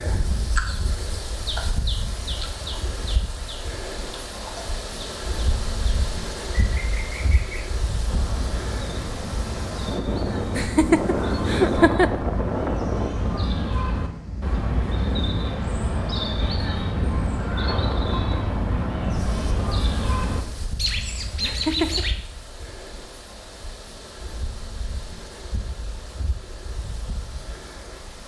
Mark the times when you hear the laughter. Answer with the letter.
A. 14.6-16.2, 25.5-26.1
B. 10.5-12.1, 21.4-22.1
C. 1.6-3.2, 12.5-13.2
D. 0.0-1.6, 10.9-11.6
B.